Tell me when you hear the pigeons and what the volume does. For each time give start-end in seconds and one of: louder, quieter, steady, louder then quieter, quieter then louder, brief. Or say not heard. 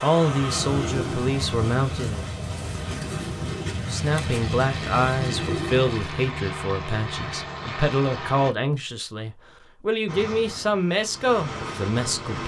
0.3-5.9 steady.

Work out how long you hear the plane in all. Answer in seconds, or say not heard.
11 s.